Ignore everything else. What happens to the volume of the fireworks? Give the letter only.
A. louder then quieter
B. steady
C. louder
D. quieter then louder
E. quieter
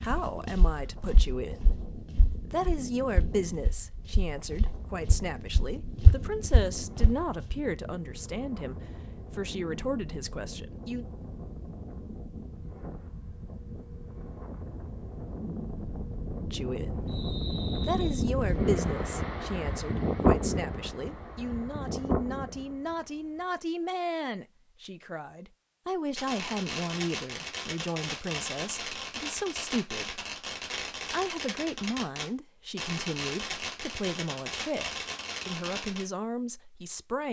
B.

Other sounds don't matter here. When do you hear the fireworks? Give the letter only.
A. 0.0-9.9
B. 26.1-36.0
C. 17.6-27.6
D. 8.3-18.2
B.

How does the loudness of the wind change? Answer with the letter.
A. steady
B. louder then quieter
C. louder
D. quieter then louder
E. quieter
C.